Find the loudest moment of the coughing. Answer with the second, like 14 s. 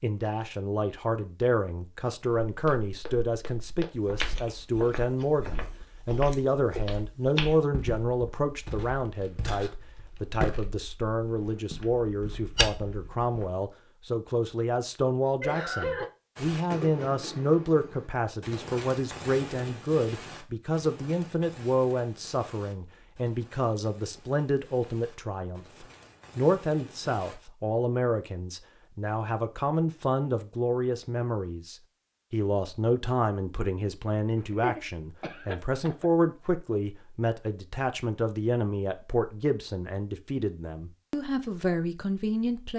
16 s.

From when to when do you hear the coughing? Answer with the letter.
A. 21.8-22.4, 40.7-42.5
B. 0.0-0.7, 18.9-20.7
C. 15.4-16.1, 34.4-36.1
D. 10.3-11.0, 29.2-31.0
C.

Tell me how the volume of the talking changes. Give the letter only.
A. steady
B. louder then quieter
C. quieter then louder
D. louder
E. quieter
A.